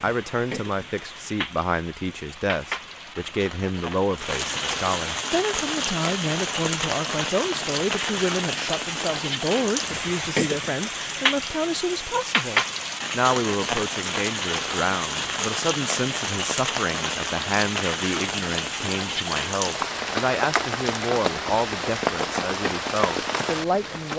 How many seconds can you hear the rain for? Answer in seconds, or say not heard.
24 s.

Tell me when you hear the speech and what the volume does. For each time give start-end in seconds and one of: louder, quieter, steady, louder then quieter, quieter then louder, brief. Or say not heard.
0.0-24.1 steady.